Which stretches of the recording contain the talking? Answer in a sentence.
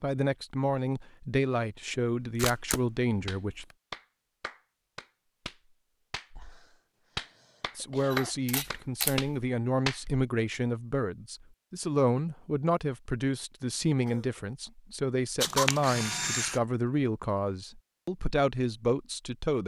The talking can be heard from 0.0 to 3.6 s and from 7.8 to 19.6 s.